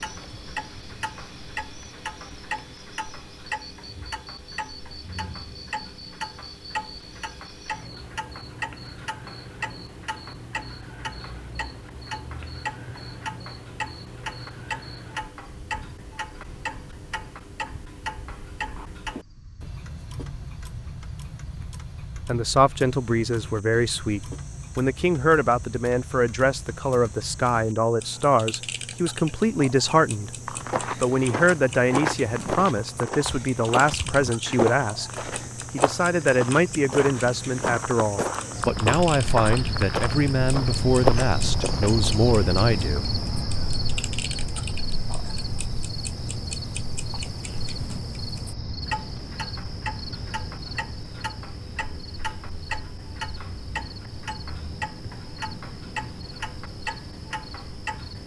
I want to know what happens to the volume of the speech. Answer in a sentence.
The volume of the speech stays about the same.